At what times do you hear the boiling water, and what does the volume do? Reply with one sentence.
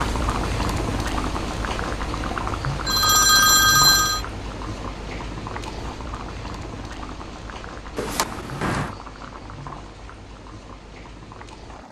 The boiling water can be heard from 0.0 to 11.8 s, getting quieter.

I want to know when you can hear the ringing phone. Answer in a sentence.
You can hear the ringing phone from 2.9 to 4.2 s and from 8.0 to 8.9 s.